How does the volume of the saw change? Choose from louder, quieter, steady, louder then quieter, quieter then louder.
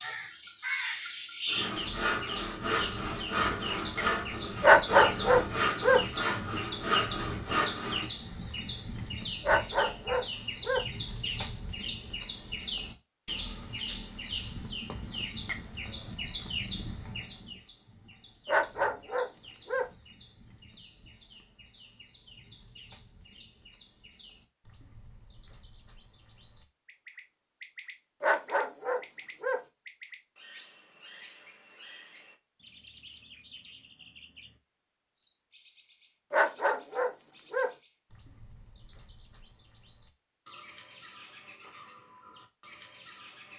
steady.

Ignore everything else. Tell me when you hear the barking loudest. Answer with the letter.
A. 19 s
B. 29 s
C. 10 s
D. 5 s
D.